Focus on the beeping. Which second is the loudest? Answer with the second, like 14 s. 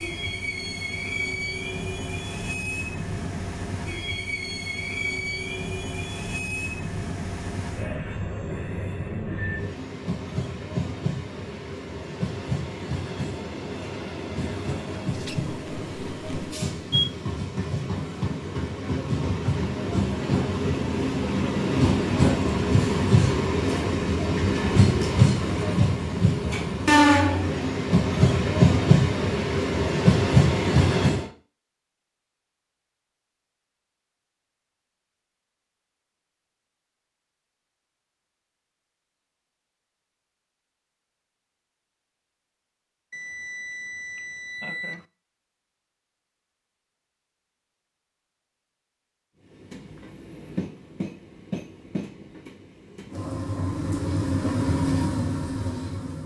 17 s.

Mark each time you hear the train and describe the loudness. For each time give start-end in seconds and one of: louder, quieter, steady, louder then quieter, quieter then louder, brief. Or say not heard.
0.0-31.3 louder
49.5-56.2 louder.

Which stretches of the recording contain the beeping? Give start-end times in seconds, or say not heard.
15.1-17.1, 43.1-45.0.